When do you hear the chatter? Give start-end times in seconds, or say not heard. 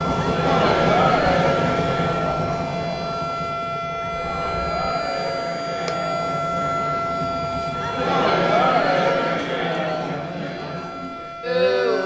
0.1-12.0.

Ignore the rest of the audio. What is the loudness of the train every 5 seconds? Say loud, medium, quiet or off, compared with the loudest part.
loud, medium, off.